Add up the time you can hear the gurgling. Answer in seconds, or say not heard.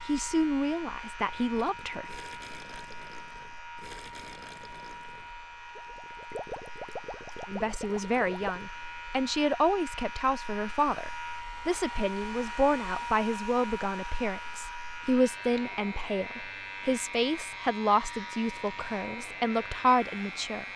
7 s.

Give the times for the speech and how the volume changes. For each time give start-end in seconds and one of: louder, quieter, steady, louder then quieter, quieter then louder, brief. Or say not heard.
0.1-2.1 brief
7.5-20.6 steady.